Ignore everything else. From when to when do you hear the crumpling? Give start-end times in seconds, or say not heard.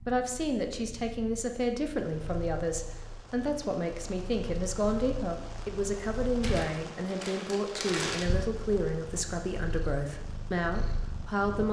6.4-8.3.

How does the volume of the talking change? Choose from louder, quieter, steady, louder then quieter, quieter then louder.
steady.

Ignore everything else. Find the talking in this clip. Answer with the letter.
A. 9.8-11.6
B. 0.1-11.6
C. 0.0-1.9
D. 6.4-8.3
B.